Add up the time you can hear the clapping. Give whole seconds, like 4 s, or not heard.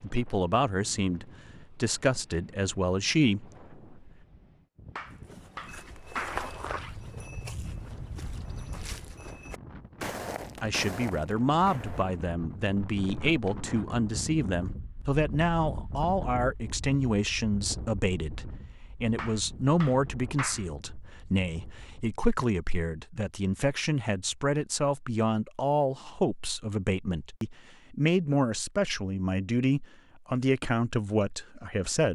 3 s.